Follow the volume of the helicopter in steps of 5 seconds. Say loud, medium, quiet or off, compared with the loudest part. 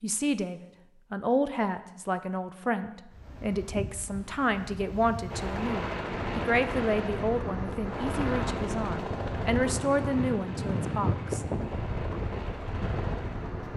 off, loud, medium.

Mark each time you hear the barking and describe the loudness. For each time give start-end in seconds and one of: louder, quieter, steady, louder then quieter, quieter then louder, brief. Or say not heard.
not heard.